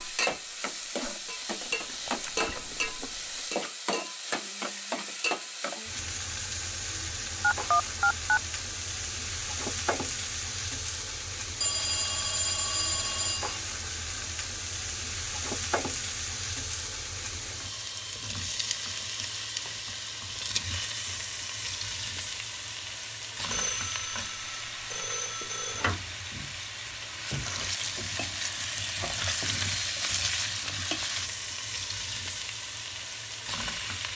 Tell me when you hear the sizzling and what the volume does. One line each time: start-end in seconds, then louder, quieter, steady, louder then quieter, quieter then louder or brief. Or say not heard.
0.0-34.1 steady.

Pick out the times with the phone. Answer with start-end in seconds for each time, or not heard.
7.4-8.4, 11.6-13.6, 23.5-25.9.